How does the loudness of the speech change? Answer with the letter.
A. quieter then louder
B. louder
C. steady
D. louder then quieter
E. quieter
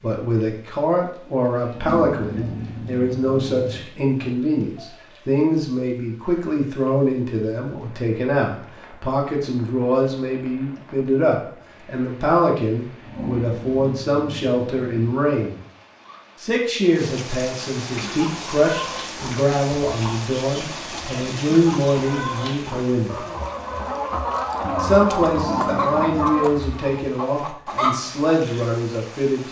C.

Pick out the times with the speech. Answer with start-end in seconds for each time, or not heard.
0.0-15.6, 16.4-23.2, 24.8-29.4.